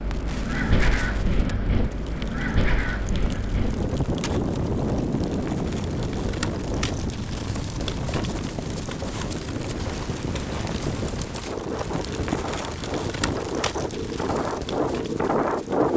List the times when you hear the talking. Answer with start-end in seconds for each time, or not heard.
not heard.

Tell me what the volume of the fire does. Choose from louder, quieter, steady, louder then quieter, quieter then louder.
louder.